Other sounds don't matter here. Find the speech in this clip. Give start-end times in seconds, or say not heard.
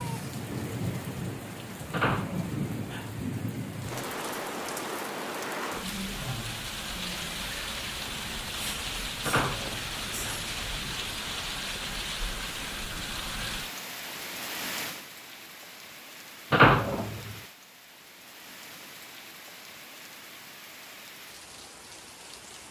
not heard.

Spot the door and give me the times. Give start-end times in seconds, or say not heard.
1.9-3.1, 9.2-10.4, 16.5-17.4.